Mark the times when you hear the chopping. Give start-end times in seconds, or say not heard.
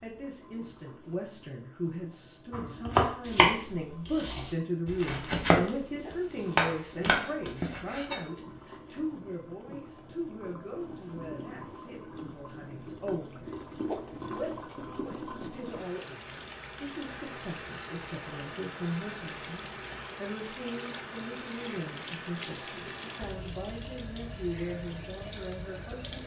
2.5-8.2.